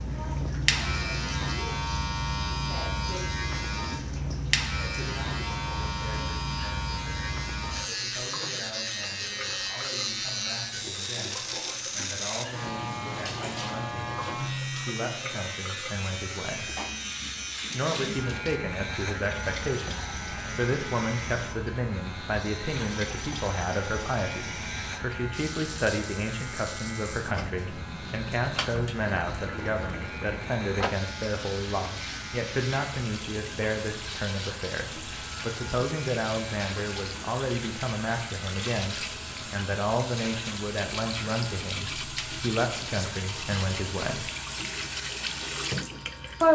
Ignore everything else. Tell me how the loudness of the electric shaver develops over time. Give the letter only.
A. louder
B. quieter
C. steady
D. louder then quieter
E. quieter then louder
B.